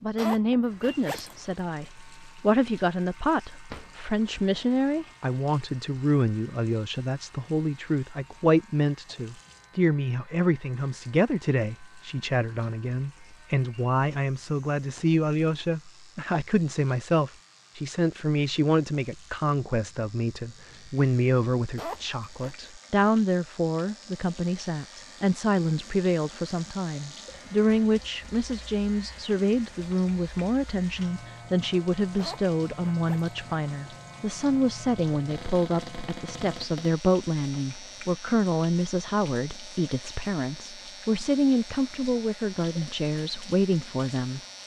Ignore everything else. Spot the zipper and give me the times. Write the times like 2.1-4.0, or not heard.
0.1-1.4, 21.8-22.7, 32.1-33.4.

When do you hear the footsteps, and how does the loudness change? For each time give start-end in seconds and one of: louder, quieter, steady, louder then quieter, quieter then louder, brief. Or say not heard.
not heard.